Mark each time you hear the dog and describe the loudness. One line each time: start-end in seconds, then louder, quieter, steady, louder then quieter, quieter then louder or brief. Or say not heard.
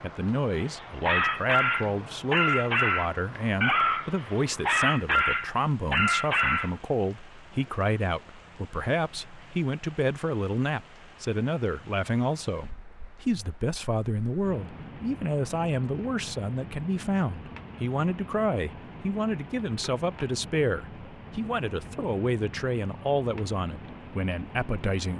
0.8-6.7 steady.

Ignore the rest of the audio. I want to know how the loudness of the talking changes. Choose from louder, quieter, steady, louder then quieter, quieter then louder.
steady.